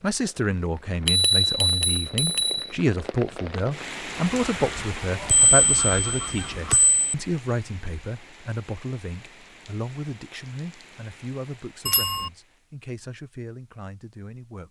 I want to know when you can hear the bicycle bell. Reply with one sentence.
The bicycle bell can be heard from 1.1 to 2.6 s, from 5.2 to 7.2 s and from 11.8 to 12.3 s.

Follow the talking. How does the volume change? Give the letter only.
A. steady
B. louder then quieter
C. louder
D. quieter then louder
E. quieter
E.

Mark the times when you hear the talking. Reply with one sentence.
The talking can be heard from 0.0 to 14.6 s.